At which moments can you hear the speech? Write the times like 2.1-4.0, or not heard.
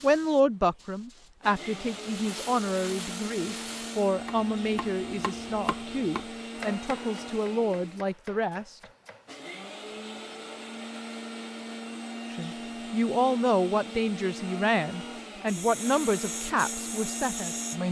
0.0-8.8, 12.3-17.8.